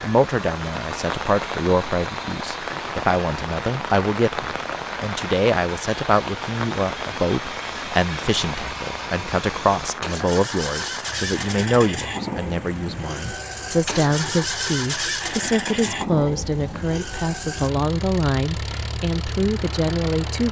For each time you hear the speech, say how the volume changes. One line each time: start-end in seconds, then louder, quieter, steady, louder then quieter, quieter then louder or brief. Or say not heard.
0.0-20.4 steady.